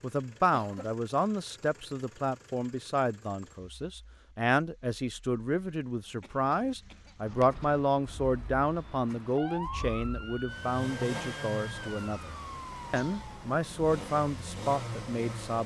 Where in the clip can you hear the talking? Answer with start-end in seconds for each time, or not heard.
0.0-15.6.